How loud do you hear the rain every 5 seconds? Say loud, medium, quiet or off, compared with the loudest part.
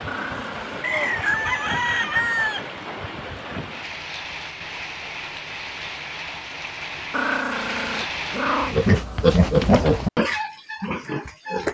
loud, loud, off.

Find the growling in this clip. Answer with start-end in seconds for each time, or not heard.
0.1-0.8, 7.1-8.8.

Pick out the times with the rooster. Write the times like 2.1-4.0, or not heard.
0.8-2.7.